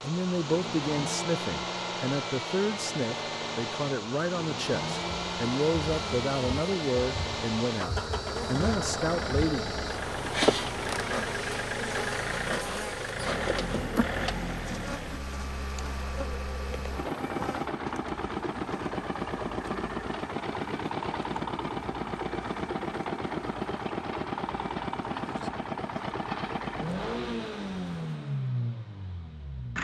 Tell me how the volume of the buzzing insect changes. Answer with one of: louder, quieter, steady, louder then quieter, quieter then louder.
quieter.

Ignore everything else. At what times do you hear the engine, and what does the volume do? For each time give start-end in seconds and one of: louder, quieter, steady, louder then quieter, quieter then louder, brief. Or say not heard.
0.0-29.7 steady.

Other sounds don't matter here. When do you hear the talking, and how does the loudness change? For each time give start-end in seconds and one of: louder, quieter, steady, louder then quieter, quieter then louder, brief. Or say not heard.
0.0-9.8 steady.